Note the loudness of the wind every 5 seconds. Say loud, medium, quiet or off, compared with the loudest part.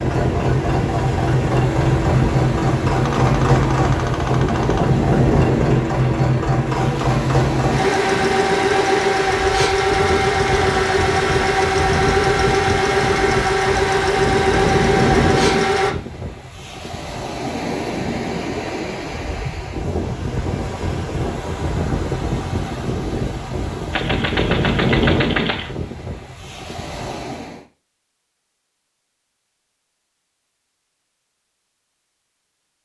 loud, loud, loud, loud, loud, loud, off.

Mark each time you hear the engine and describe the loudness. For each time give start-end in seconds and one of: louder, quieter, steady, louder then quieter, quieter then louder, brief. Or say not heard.
0.0-15.9 steady.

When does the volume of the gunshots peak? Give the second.
25 s.